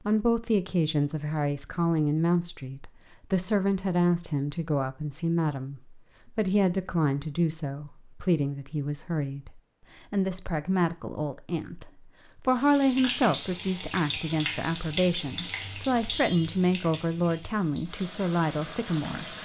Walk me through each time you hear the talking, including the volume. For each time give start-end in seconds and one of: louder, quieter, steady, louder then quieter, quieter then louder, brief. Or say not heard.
0.1-19.4 steady.